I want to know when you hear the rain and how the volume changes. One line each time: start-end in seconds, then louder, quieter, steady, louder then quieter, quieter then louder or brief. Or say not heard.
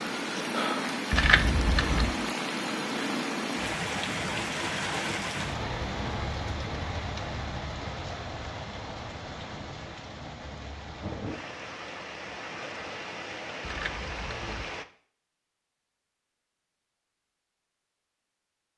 0.0-14.8 quieter.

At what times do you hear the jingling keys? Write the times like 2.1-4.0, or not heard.
1.1-2.1, 13.6-14.7.